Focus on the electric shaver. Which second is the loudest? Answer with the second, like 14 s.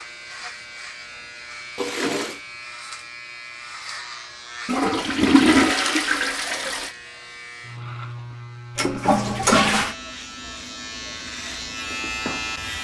12 s.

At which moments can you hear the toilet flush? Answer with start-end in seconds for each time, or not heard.
1.8-2.4, 4.7-6.9, 8.8-9.9.